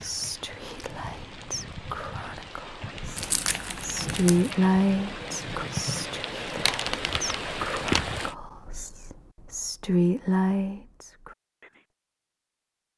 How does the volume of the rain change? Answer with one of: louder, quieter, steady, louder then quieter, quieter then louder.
louder.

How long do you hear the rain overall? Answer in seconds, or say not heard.
8 s.